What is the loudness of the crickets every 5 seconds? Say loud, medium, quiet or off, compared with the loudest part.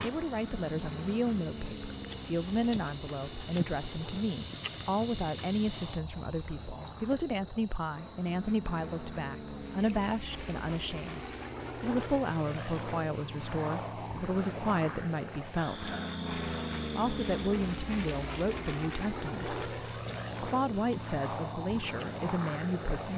loud, loud, medium, medium, medium.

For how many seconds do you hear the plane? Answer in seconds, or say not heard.
23 s.